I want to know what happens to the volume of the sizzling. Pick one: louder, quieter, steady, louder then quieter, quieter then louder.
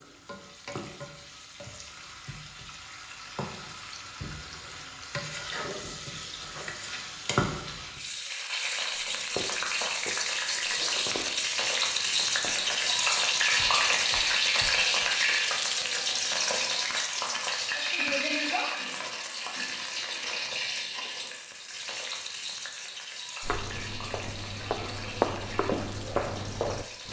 louder then quieter.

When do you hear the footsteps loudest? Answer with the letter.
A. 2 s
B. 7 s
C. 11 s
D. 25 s
D.